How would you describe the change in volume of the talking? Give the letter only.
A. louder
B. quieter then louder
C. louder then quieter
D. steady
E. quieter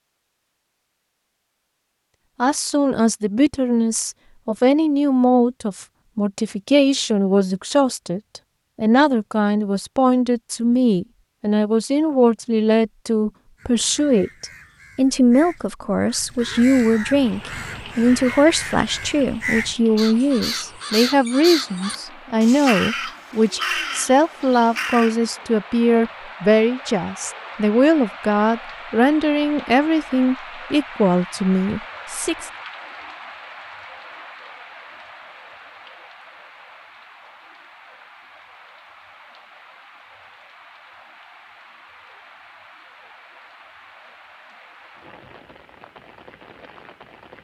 D.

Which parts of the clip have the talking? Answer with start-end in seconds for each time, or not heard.
2.4-32.5.